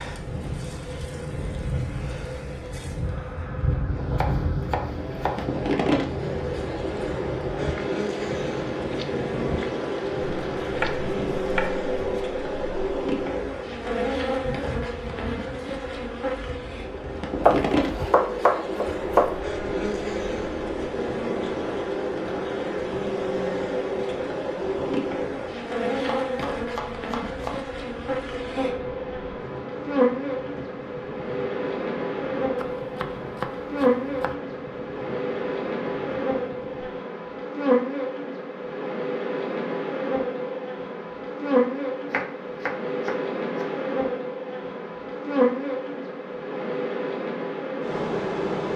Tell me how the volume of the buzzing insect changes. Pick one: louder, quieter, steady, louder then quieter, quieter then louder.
steady.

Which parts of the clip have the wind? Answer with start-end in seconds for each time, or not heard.
0.0-37.0.